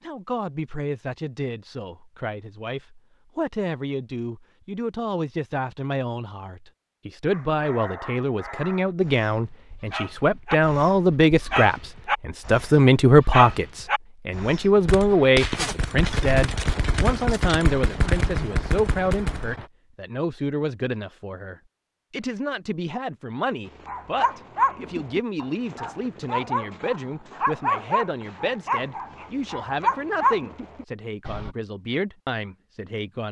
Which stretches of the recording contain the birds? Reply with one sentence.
You can't hear the birds here.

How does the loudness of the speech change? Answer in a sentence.
The loudness of the speech goes up, then down.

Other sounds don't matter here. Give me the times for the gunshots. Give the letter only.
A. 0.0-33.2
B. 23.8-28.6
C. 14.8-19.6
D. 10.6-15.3
C.